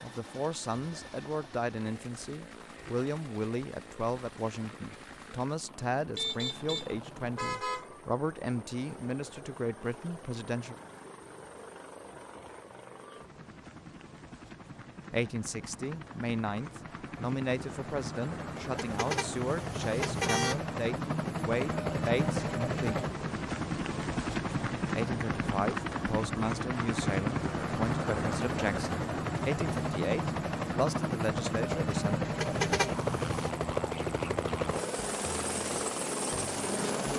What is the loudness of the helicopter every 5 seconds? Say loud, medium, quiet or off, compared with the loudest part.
quiet, quiet, quiet, medium, loud, loud, loud, loud.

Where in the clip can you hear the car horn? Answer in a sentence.
You can hear the car horn from 6.2 to 8.0 s, from 18.8 to 20.6 s and from 32.4 to 33.5 s.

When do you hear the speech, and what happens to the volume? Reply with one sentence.
The speech can be heard from 0.0 to 10.8 s, at a steady volume; from 15.1 to 23.1 s, at a steady volume; and from 24.9 to 32.2 s, at a steady volume.